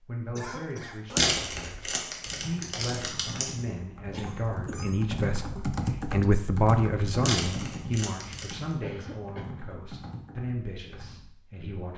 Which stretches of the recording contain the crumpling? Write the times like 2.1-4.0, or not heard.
1.1-3.5, 7.2-8.6.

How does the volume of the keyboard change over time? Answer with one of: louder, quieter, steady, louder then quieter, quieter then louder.
louder then quieter.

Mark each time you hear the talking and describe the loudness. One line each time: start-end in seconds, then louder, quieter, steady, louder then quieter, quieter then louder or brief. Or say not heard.
0.0-11.9 louder then quieter.